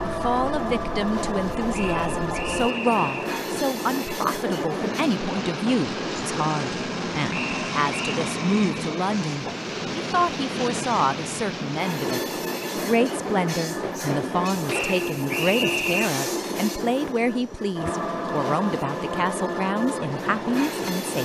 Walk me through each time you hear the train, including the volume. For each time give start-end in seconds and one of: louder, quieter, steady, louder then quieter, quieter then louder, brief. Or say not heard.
0.0-21.2 steady.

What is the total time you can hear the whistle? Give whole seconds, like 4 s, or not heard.
4 s.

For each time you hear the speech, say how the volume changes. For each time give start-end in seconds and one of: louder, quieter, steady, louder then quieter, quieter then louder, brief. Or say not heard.
0.1-21.2 steady.